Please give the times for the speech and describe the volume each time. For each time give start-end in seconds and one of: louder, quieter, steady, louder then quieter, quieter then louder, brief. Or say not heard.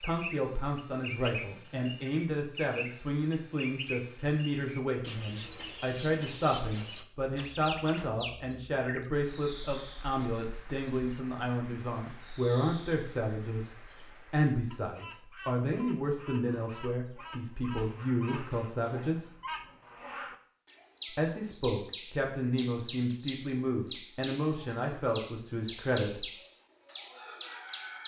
0.0-19.4 steady
21.1-26.3 steady.